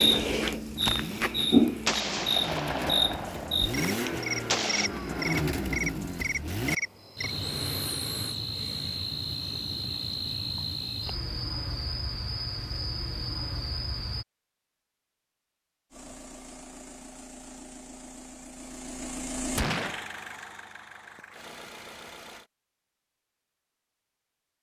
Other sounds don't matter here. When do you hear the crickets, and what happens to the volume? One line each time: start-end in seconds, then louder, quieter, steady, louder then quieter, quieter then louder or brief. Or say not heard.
0.0-14.2 quieter.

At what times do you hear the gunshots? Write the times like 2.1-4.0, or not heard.
1.9-4.9, 19.6-20.1.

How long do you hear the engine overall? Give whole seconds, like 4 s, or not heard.
13 s.